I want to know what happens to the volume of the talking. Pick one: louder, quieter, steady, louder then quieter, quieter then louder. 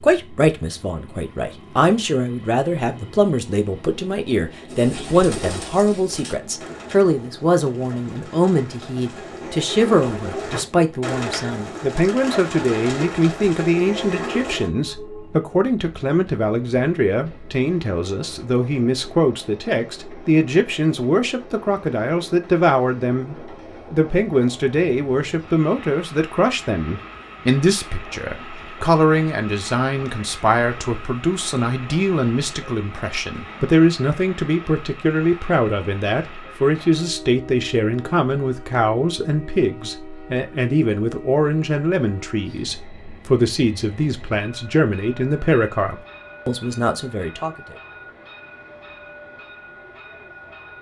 steady.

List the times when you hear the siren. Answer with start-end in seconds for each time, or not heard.
not heard.